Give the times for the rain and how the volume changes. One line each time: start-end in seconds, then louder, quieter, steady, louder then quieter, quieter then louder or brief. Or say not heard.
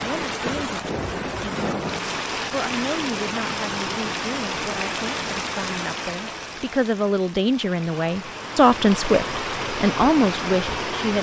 0.0-11.1 quieter then louder.